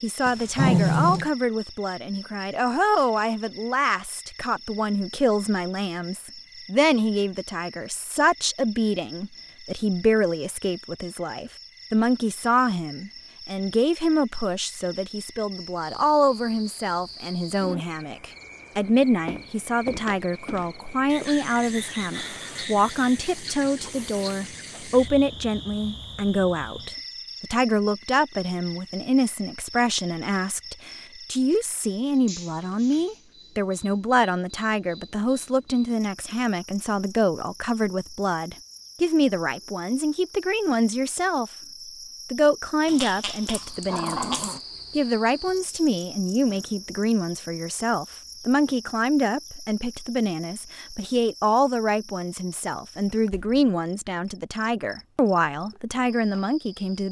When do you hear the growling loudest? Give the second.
1 s.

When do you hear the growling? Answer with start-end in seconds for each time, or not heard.
0.2-1.3, 42.9-44.6.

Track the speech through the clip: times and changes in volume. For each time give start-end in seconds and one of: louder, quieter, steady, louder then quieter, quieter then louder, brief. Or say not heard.
0.0-41.5 steady
42.3-57.0 steady.